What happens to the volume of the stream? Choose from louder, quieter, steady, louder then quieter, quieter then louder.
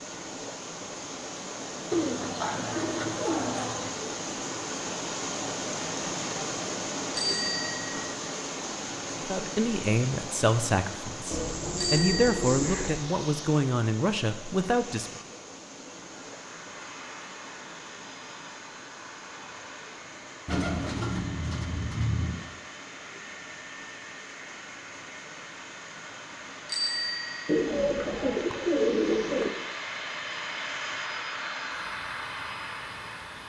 quieter.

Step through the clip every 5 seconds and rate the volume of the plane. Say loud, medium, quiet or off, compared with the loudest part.
off, off, off, medium, medium, medium, loud.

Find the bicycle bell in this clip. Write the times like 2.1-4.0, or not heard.
7.1-7.9, 11.8-12.4, 26.6-27.7.